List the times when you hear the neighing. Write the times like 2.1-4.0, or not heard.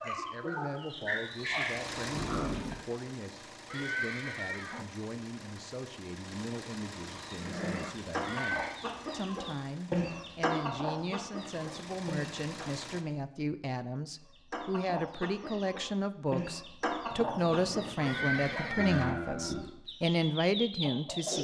3.7-4.9, 8.2-8.8, 18.0-19.2.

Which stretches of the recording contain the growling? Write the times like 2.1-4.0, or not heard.
2.1-2.9, 7.3-8.0, 17.1-18.8.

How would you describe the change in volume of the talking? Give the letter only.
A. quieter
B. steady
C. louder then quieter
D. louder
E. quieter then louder
D.